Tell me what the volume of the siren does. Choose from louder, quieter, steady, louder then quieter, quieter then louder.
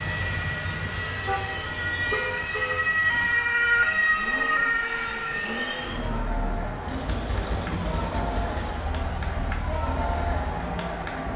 louder then quieter.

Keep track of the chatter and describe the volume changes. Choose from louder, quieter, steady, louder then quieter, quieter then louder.
louder.